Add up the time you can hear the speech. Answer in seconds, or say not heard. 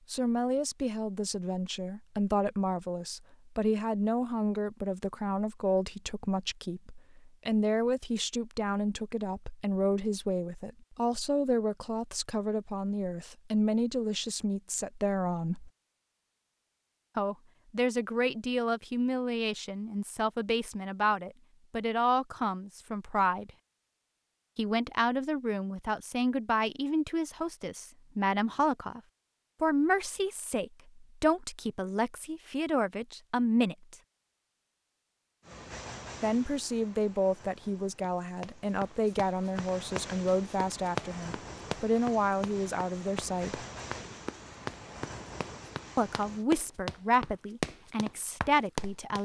41 s.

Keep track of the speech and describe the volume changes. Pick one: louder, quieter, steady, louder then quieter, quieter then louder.
steady.